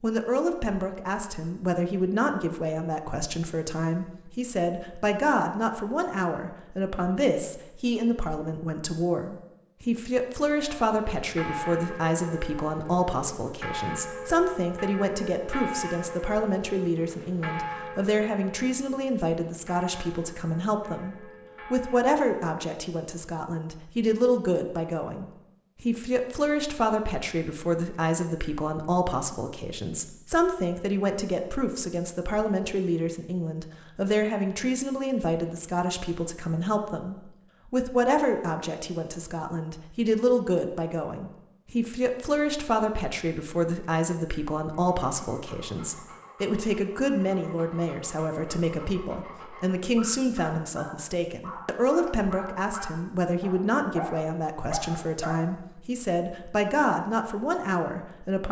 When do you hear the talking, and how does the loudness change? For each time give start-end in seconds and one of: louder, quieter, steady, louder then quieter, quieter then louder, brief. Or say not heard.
0.0-58.4 steady.